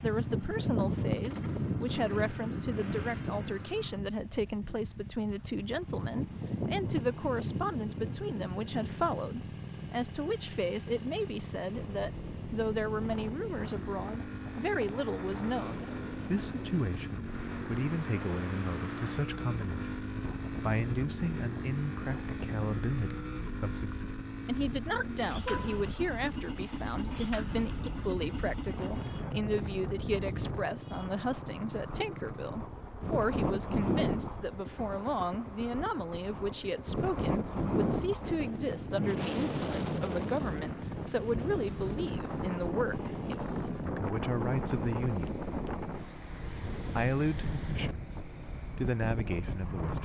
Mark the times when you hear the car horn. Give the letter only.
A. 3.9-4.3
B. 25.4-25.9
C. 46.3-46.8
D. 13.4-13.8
B.